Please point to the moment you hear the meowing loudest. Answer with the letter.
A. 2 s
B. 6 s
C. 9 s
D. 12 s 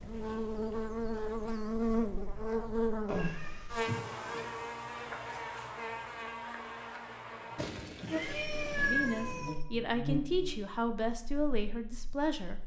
C.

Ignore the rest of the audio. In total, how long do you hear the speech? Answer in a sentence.
You can hear the speech for 4 seconds altogether.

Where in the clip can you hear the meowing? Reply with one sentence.
The meowing can be heard from 3.0 to 4.5 s and from 7.5 to 9.6 s.